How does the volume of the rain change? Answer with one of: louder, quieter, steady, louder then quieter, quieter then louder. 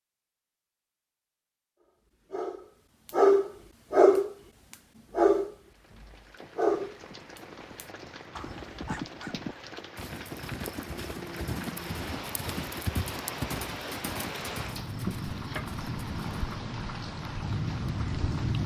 louder.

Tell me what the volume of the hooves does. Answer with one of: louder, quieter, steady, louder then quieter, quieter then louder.
louder.